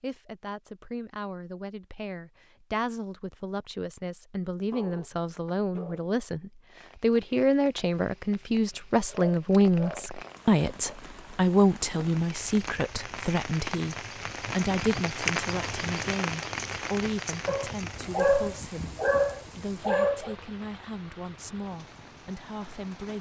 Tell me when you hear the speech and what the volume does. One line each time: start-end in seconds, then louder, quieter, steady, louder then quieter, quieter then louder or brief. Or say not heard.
0.0-23.1 louder then quieter.